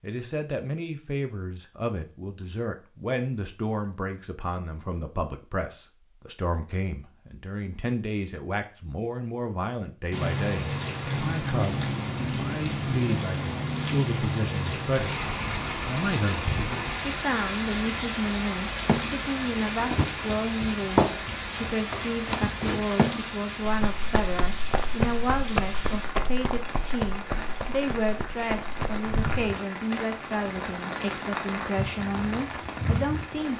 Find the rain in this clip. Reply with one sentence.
You can hear the rain from 10.1 to 33.5 s.